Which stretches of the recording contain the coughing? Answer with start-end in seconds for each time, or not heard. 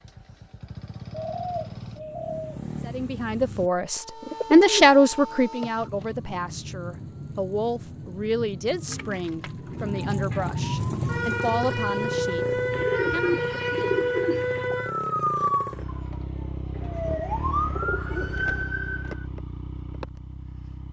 not heard.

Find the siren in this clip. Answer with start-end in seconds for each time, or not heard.
3.9-19.2.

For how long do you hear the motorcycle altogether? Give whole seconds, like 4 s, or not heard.
14 s.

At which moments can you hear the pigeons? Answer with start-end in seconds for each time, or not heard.
1.1-2.6, 4.2-5.0, 5.6-6.0, 8.8-10.6, 12.7-14.8, 16.8-18.6.